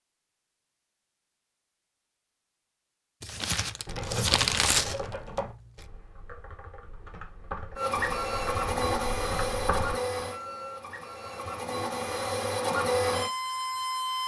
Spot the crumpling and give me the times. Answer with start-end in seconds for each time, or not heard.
3.2-5.6.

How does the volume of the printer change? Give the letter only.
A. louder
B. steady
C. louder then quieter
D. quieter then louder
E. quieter
D.